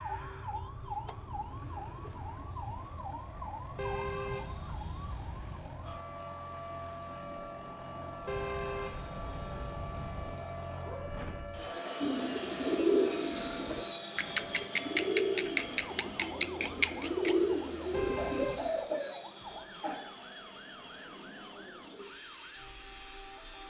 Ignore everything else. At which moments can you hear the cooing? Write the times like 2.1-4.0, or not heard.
12.0-18.4.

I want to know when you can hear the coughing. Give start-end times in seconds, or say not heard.
18.1-20.0.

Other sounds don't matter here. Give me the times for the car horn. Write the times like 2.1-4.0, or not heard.
3.8-5.7, 8.2-10.3, 17.9-18.7.